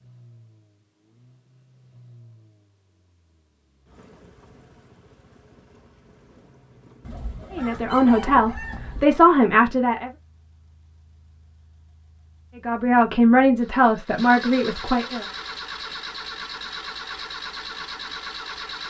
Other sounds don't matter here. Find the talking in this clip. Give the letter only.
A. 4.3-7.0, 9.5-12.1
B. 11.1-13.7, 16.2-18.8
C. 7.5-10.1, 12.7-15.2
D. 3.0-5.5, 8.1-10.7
C.